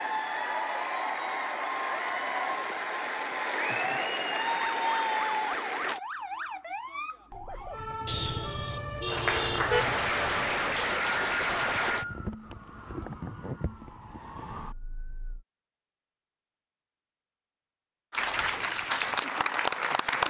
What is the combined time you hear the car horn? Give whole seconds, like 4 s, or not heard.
2 s.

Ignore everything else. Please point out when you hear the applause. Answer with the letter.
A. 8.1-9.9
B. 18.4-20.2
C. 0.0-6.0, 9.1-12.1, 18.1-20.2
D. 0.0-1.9
C.